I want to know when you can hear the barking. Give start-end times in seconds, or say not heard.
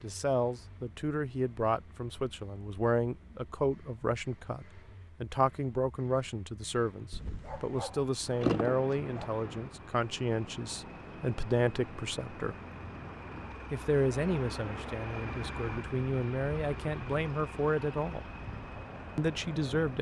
7.1-9.3.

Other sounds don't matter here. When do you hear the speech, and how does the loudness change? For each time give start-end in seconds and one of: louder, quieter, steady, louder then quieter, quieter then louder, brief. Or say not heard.
0.0-12.6 steady
13.7-18.2 quieter then louder
19.1-19.9 brief.